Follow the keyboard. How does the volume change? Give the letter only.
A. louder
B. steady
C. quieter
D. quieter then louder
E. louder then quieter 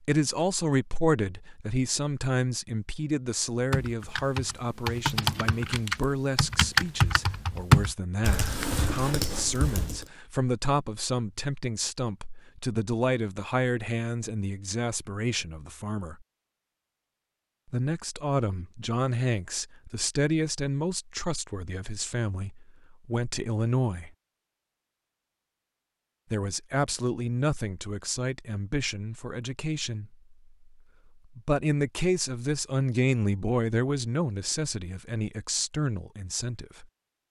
E.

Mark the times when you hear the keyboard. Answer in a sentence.
The keyboard can be heard from 3.7 to 10.1 s.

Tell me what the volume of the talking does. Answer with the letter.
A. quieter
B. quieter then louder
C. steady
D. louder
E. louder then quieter
C.